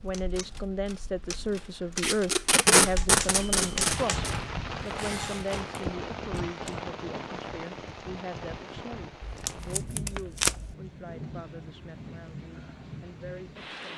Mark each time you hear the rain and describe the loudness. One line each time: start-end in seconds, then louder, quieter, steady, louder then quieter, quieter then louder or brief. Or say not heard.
0.0-13.9 louder then quieter.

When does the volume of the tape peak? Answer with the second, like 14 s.
3 s.